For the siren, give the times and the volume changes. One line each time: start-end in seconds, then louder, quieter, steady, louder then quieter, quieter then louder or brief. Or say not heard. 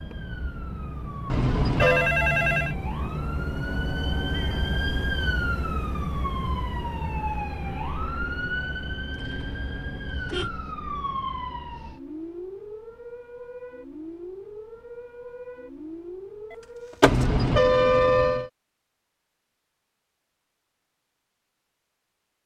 0.0-17.1 quieter.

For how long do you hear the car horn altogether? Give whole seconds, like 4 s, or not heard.
4 s.